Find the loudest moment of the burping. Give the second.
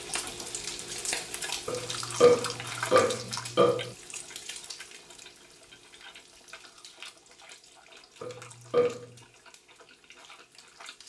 2 s.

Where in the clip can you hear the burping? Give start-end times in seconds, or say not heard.
1.6-3.9, 8.2-9.2.